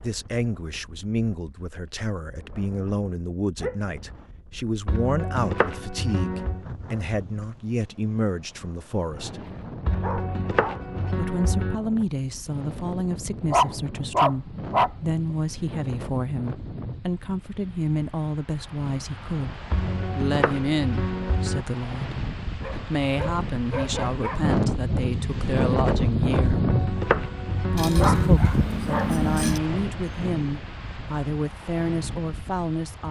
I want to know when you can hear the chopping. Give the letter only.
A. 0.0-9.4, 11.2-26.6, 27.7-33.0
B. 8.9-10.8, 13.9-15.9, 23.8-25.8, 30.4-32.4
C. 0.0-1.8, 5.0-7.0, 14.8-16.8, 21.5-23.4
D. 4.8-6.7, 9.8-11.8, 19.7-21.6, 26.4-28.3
D.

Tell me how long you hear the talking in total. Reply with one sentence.
You can hear the talking for 30 seconds altogether.